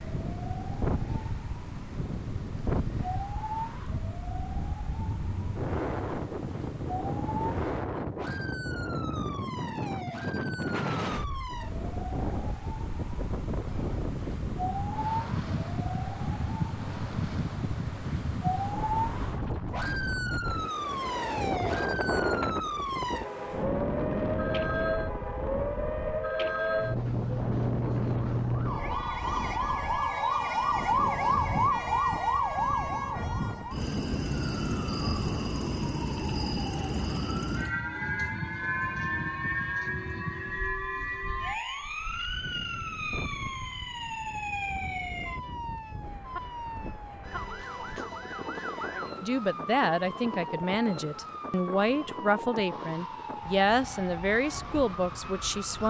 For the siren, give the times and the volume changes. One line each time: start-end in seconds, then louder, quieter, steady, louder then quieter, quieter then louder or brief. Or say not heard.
0.0-55.8 louder then quieter.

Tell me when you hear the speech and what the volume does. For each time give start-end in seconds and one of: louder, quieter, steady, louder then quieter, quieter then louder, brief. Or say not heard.
49.2-55.8 steady.